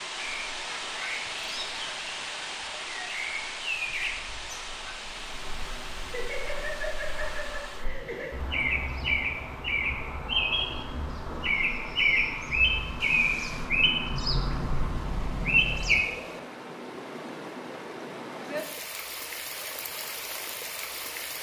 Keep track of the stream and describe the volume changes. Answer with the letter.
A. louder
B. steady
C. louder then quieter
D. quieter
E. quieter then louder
E.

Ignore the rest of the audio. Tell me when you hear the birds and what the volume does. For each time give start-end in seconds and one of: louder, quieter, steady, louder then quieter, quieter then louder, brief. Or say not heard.
0.2-16.1 louder.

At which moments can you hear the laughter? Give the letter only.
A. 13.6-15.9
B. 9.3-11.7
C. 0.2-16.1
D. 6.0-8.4
D.